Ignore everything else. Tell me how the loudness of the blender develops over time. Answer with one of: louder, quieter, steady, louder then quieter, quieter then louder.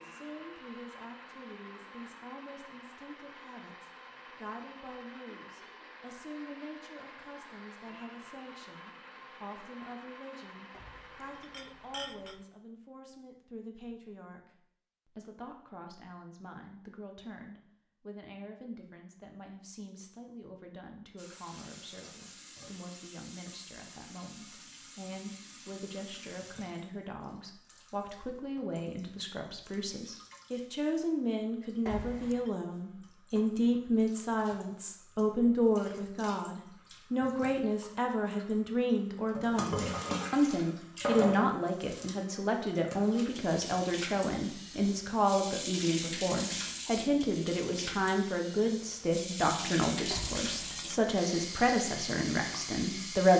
steady.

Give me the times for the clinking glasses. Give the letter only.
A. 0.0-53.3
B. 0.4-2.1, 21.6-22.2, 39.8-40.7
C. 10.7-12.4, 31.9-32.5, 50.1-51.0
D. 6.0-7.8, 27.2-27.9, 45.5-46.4
C.